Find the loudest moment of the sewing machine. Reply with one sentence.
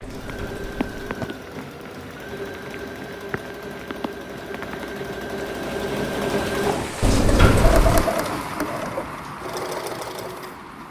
The volume of the sewing machine peaks at 8 seconds.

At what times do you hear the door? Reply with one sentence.
You can hear the door from 0.0 to 1.3 s and from 7.0 to 8.1 s.